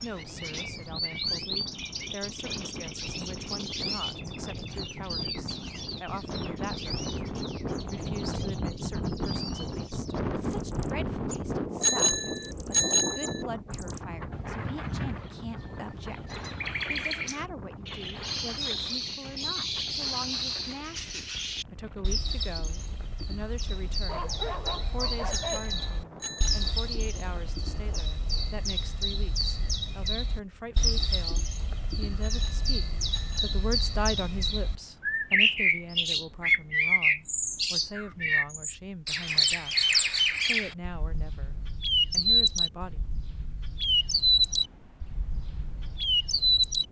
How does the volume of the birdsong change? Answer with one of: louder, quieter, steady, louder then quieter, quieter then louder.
louder.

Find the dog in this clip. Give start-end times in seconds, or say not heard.
24.1-25.7.